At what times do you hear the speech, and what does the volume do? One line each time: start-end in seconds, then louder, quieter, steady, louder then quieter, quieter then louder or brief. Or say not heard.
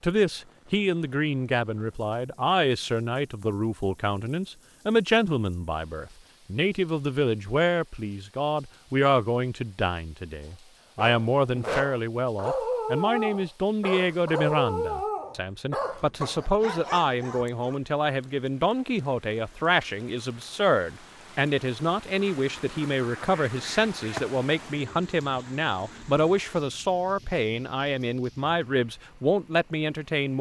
0.0-30.3 steady.